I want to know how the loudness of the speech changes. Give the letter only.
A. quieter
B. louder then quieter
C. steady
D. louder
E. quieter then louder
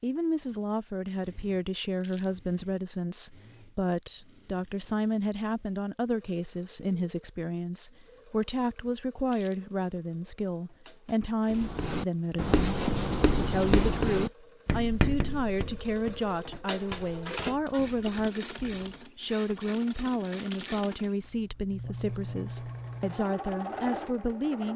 C.